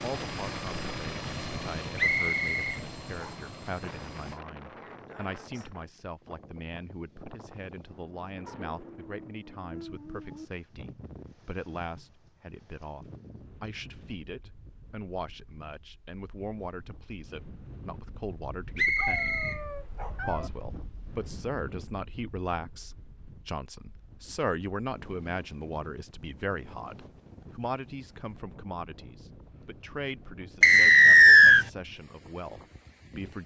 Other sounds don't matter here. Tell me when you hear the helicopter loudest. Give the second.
1 s.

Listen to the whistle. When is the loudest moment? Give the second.
31 s.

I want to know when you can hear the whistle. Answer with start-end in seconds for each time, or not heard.
1.9-3.3, 18.8-19.6, 30.6-31.6.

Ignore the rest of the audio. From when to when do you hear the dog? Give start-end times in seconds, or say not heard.
8.4-10.5, 18.9-20.5.